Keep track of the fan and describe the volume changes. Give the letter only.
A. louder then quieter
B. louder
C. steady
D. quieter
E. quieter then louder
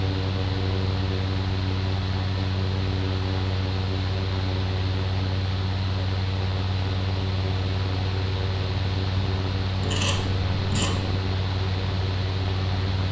C.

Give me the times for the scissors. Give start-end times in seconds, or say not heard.
9.8-11.2.